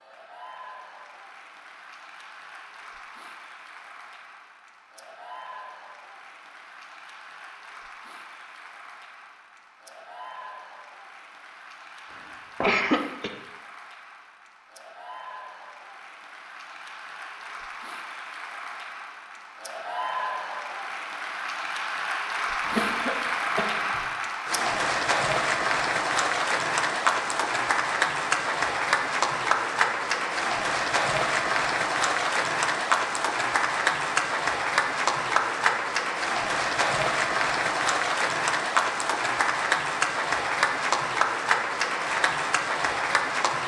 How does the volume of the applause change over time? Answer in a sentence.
The volume of the applause goes up.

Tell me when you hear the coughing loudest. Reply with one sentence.
The volume of the coughing peaks at 13 seconds.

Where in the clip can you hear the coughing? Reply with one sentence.
The coughing can be heard from 12.1 to 13.3 s and from 22.6 to 24.1 s.